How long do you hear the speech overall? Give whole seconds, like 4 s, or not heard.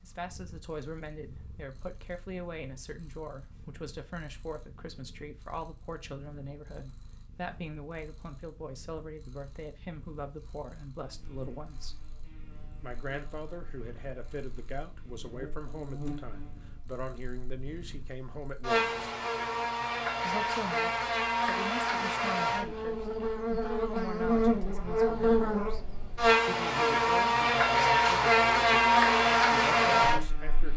28 s.